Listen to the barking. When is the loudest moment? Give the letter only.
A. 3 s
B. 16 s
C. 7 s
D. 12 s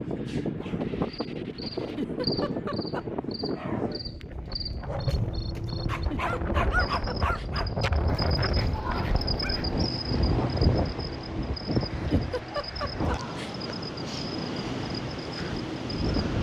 C.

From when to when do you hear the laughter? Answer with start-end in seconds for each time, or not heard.
1.8-3.0, 5.9-7.5, 11.9-13.6.